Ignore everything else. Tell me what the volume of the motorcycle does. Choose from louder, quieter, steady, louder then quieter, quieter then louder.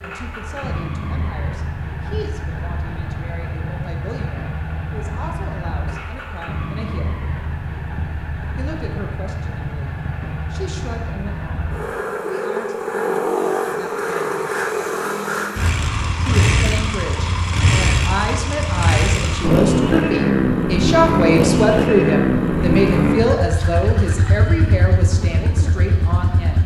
louder.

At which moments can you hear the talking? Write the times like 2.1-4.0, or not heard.
0.0-7.2, 8.6-14.5, 16.2-26.6.